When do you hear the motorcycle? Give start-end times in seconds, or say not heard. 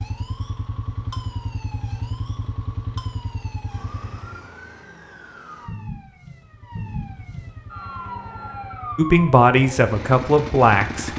0.0-4.5, 6.4-11.1.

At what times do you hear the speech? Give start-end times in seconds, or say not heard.
8.9-11.1.